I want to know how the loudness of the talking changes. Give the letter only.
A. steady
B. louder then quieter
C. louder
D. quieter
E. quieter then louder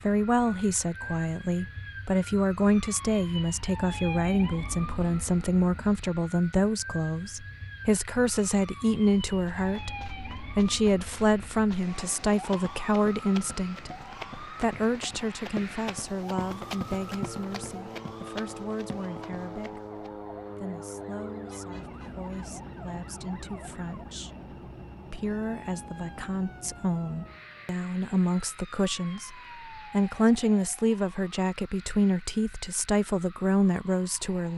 E.